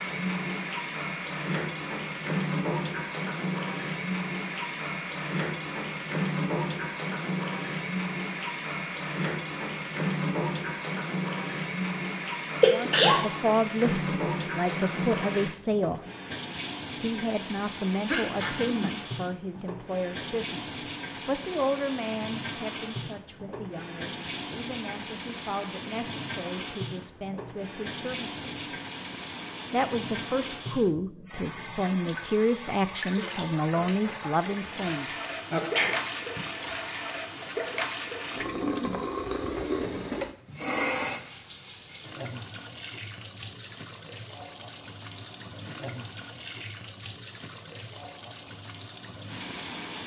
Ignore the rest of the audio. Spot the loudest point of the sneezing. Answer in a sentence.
The volume of the sneezing peaks at 13 seconds.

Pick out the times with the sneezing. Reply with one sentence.
The sneezing can be heard from 12.6 to 13.2 s, from 18.1 to 18.9 s and from 35.5 to 36.4 s.